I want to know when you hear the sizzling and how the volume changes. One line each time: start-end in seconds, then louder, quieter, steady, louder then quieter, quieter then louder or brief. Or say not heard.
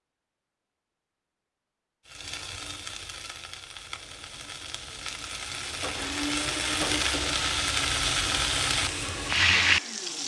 2.0-10.2 louder.